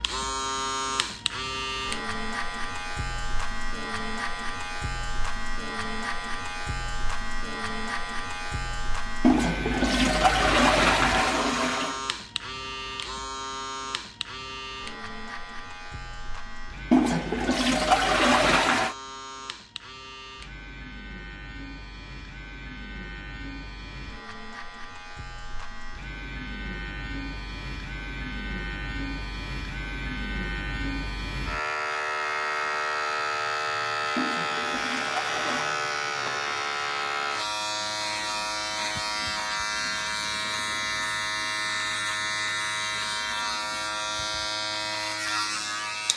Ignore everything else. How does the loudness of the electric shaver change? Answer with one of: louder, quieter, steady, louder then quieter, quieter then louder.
quieter then louder.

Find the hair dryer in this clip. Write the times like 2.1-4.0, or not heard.
not heard.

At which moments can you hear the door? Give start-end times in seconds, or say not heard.
not heard.